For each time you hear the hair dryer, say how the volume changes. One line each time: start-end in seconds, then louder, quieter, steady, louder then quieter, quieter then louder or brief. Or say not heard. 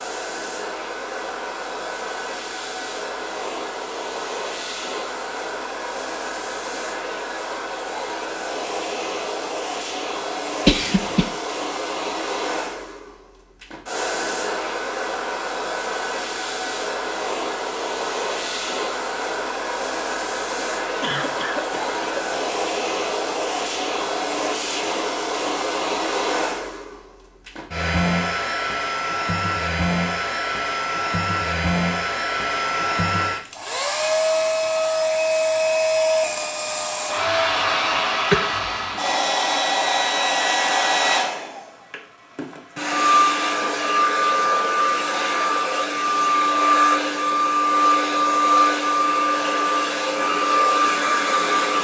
0.0-51.7 louder.